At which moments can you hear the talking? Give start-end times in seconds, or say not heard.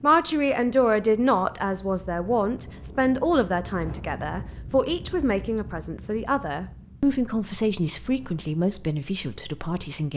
0.0-10.1.